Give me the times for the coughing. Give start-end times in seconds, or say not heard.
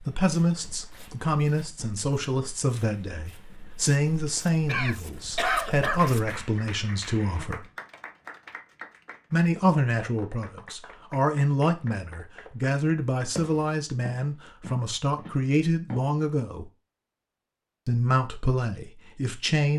4.7-6.0.